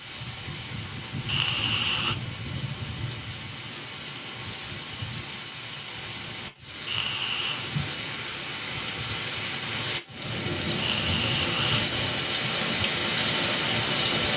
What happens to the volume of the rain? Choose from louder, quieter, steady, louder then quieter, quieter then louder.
louder.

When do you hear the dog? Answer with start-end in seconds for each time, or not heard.
not heard.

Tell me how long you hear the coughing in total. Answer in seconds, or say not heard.
3 s.